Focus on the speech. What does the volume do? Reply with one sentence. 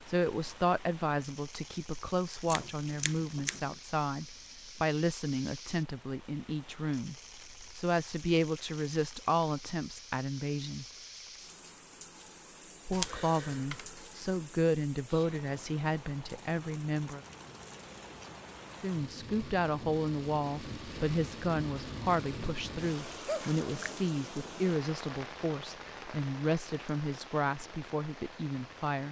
The volume of the speech stays about the same.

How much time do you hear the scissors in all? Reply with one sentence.
The scissors can be heard for 3 seconds in total.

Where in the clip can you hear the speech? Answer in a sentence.
You can hear the speech from 0.1 to 10.8 s, from 12.8 to 17.2 s and from 18.8 to 29.0 s.